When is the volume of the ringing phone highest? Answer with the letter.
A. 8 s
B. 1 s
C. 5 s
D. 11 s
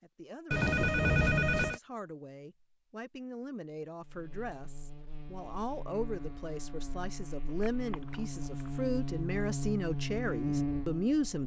B.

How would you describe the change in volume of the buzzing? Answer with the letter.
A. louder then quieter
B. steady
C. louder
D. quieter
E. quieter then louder
C.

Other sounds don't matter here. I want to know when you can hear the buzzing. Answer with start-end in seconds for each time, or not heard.
4.0-11.4.